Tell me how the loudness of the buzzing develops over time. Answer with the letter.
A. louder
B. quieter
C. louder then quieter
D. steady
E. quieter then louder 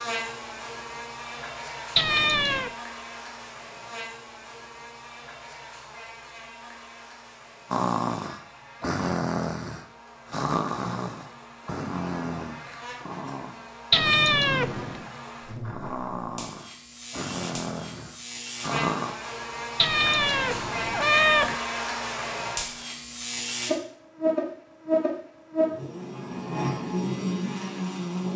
E.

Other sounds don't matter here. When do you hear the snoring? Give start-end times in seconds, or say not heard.
7.7-19.1.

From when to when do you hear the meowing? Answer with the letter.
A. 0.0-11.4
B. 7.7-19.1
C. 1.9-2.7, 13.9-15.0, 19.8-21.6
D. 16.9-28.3
C.